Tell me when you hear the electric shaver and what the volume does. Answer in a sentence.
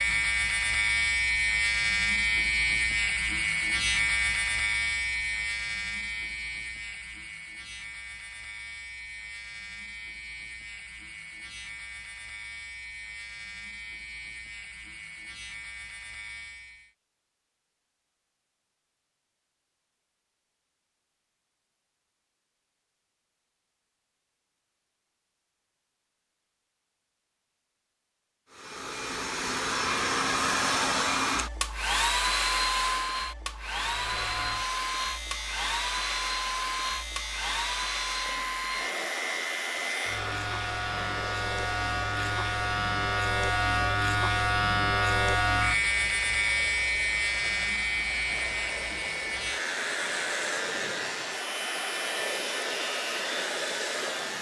The electric shaver can be heard from 0.0 to 16.9 s, getting quieter; and from 33.8 to 54.3 s, getting louder then quieter.